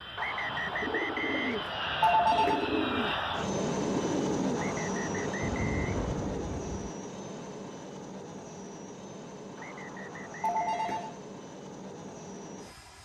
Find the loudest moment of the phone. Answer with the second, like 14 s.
2 s.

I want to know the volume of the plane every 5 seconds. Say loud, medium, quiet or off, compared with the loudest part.
loud, medium, medium.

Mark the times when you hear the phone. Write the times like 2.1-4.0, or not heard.
2.0-2.7, 10.4-11.2.